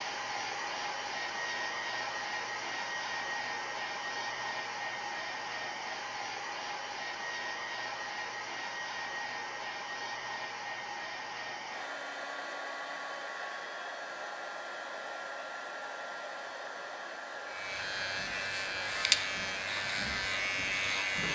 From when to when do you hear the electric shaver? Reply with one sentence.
You can hear the electric shaver from 17.4 to 21.3 s.